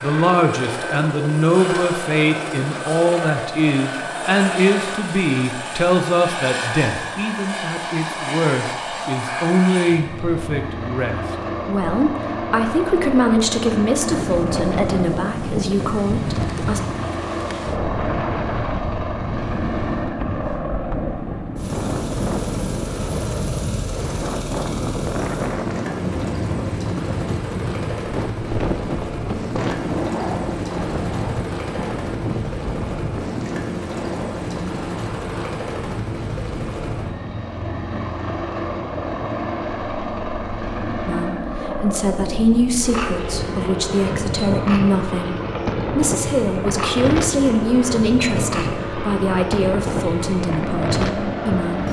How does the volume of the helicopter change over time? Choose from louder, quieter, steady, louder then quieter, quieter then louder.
steady.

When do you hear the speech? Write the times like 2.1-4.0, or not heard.
0.0-16.8, 41.0-51.8.